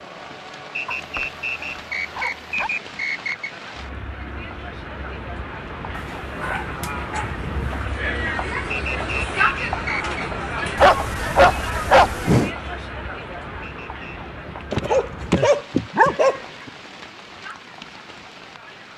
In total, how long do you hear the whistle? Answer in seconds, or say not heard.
5 s.